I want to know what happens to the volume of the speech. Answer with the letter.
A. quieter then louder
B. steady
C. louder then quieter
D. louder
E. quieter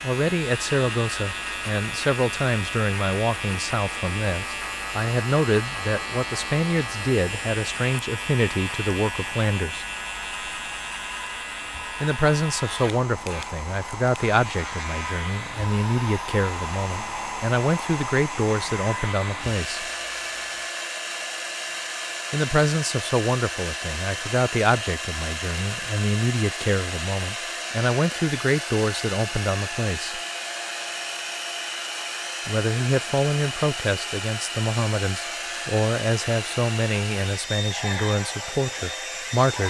B.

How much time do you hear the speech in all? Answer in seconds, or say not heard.
33 s.